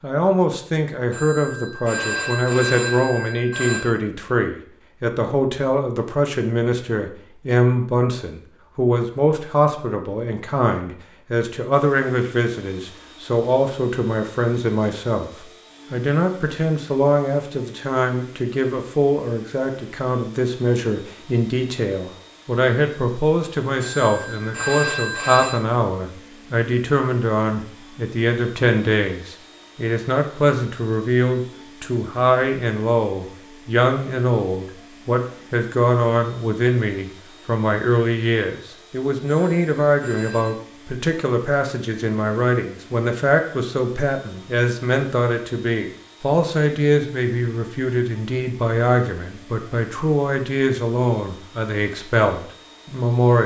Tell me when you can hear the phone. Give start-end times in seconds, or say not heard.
1.1-3.9, 23.8-25.6, 39.2-40.5.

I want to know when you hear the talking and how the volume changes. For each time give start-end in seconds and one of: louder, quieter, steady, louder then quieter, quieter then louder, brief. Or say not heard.
0.0-53.4 steady.